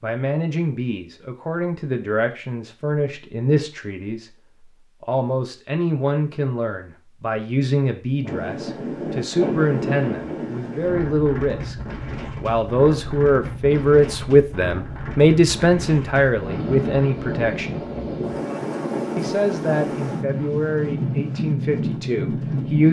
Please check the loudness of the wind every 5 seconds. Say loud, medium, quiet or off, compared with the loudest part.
off, loud, medium, loud, loud.